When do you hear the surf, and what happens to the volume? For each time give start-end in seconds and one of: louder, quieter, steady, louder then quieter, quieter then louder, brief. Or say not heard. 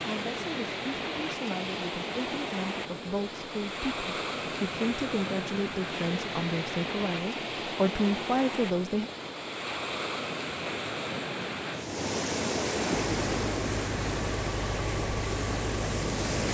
0.0-16.4 steady.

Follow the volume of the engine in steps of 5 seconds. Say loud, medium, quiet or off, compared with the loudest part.
off, off, loud, loud.